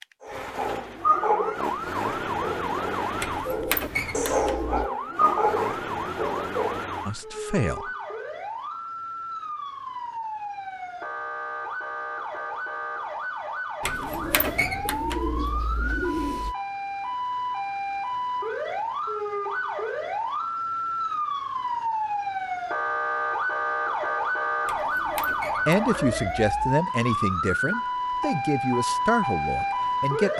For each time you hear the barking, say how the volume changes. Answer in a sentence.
You can hear the barking from 0.2 to 6.8 s, getting quieter then louder.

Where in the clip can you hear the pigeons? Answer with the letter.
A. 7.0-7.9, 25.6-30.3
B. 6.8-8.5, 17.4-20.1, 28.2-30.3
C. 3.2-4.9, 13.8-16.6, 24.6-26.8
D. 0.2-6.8
C.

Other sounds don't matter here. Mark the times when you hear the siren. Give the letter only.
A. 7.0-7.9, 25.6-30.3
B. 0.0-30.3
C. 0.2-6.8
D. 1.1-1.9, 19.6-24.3
B.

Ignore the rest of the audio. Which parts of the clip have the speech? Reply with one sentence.
The speech can be heard from 7.0 to 7.9 s and from 25.6 to 30.3 s.